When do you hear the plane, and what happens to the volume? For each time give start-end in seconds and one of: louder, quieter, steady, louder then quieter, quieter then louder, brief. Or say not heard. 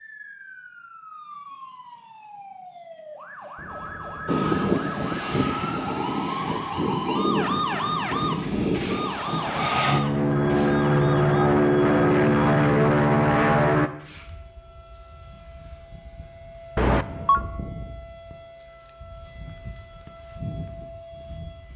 4.2-13.9 louder.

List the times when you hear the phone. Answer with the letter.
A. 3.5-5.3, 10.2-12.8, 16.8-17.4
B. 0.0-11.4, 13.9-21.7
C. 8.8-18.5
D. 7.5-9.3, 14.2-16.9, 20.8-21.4
A.